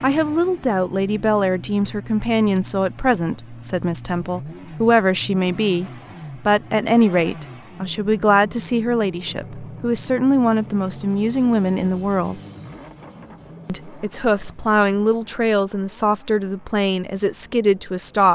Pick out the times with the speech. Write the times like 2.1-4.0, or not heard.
0.0-12.4, 13.7-18.3.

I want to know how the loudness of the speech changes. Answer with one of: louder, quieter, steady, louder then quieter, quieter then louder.
steady.